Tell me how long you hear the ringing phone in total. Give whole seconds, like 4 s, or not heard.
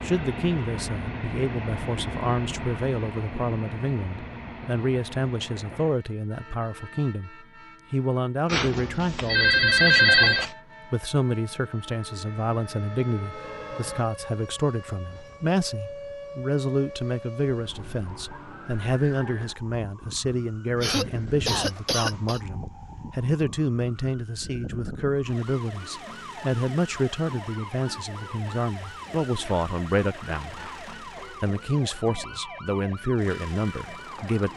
2 s.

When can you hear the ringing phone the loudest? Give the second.
10 s.